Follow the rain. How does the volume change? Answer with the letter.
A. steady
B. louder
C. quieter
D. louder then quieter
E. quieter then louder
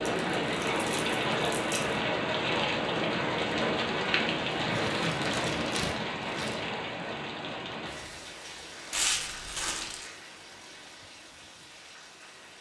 C.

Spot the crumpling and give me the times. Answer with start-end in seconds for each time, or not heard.
0.1-2.0, 4.7-6.6, 8.9-10.1.